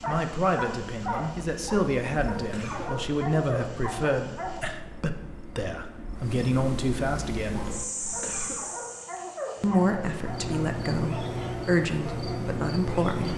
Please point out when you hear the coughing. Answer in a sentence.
The coughing can be heard from 2.5 to 3.0 s and from 8.2 to 8.7 s.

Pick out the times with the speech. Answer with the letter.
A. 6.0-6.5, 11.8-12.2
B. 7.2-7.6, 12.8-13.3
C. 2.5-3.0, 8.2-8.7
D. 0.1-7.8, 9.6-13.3
D.